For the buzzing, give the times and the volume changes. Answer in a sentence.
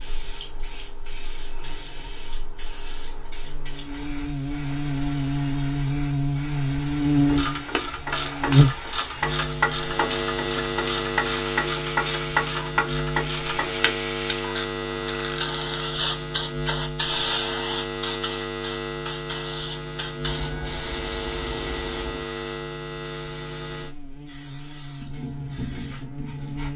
You can hear the buzzing from 0.0 to 26.7 s, getting louder then quieter.